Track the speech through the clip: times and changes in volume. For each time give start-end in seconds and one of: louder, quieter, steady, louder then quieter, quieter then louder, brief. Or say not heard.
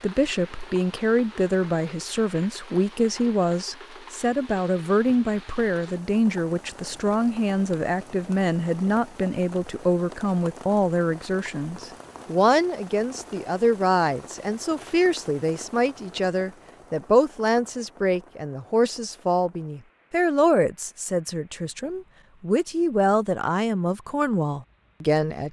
0.0-25.4 steady.